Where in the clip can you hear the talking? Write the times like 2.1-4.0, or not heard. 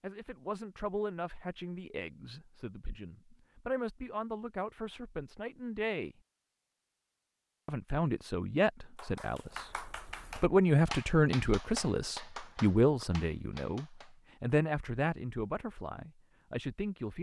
0.0-6.2, 7.7-17.1.